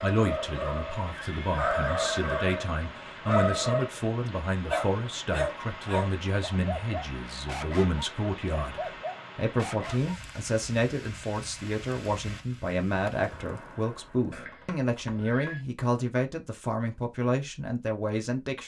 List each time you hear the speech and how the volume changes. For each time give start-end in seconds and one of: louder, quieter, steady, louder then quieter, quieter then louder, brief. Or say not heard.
0.0-18.6 steady.